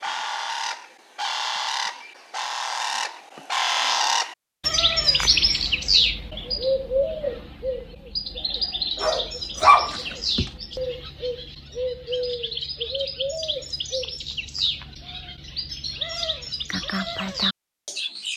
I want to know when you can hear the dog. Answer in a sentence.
You can hear the dog from 9.0 to 10.5 s.